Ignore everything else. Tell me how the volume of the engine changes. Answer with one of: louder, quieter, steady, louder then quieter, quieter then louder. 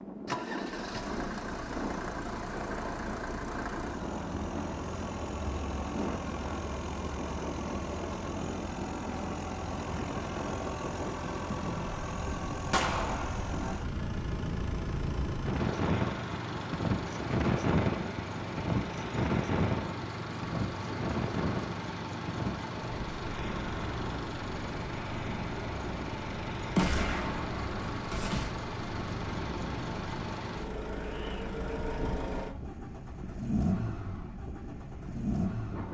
steady.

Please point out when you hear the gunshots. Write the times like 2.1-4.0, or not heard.
12.7-13.3, 26.8-28.5.